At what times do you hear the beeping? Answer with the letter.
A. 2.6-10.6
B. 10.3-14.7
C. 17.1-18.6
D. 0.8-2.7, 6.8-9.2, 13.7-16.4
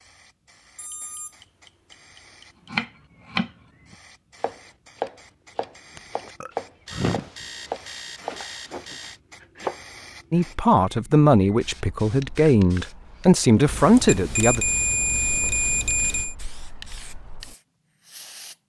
D.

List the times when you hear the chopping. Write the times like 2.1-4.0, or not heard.
2.6-10.6.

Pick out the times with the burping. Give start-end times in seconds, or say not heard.
6.0-7.5.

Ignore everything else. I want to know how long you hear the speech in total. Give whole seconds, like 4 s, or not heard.
4 s.